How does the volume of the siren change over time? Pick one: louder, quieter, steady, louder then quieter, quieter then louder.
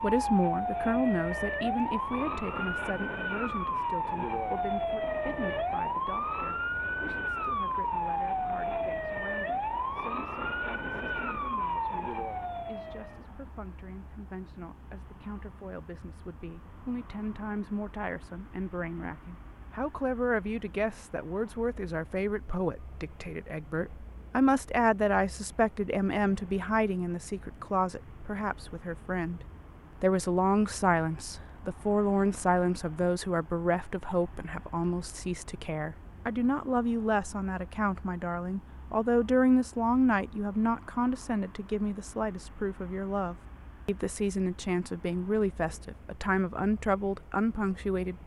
steady.